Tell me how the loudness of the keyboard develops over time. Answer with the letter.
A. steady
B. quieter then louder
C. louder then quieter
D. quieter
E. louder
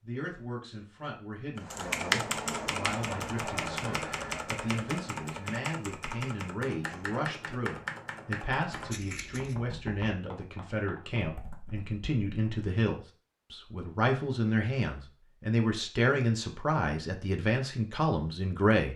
D.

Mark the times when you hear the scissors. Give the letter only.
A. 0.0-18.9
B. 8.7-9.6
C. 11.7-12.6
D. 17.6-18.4
B.